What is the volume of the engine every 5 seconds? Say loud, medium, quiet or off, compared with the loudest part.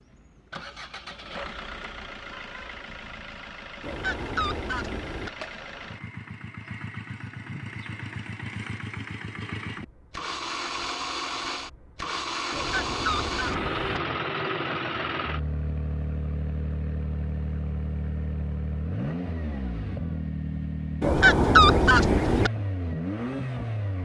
medium, medium, loud, loud, loud.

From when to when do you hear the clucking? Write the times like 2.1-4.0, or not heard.
3.8-5.3, 12.5-14.0, 21.0-22.5.